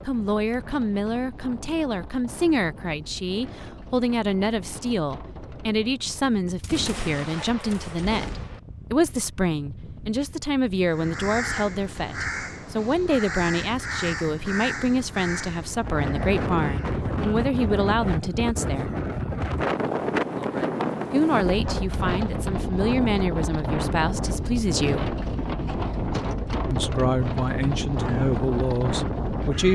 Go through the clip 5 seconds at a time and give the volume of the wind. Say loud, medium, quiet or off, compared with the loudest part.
quiet, quiet, quiet, loud, loud, loud.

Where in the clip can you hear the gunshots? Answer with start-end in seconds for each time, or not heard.
6.6-8.6.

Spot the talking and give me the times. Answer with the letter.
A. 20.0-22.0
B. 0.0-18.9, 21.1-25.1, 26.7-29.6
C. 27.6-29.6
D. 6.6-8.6
B.